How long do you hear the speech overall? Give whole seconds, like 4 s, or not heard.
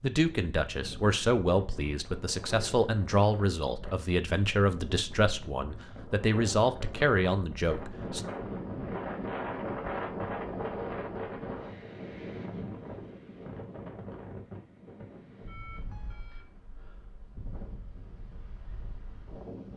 8 s.